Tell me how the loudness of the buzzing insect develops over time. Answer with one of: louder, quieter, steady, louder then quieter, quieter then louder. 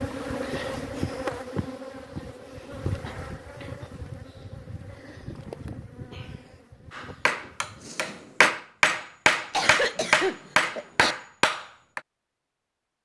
quieter.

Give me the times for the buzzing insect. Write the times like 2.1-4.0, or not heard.
0.0-8.6.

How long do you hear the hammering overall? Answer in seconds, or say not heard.
5 s.